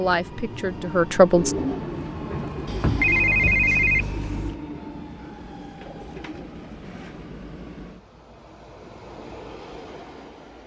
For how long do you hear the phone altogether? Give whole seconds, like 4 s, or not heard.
2 s.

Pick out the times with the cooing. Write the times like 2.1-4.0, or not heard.
1.3-7.2.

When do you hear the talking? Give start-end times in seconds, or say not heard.
0.0-1.6.